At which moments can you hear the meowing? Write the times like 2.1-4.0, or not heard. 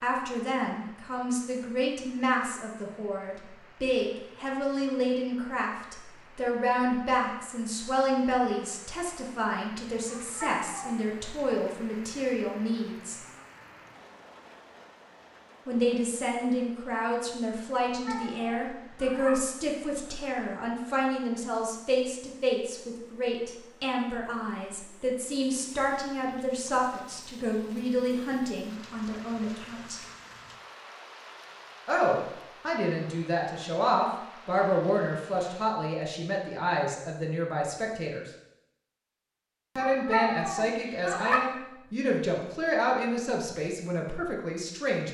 10.1-11.1, 17.9-19.4, 39.8-41.4.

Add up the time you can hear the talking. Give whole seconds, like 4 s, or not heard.
39 s.